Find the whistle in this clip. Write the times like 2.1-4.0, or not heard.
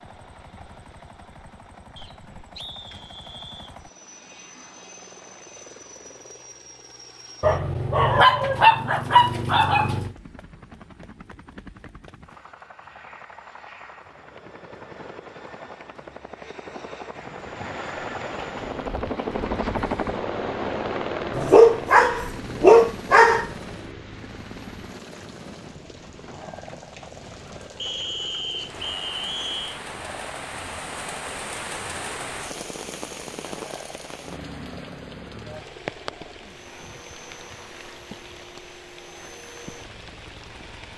1.9-3.8, 27.8-29.8.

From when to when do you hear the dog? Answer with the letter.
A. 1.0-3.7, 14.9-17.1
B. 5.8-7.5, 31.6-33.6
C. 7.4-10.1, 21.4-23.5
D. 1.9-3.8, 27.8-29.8
C.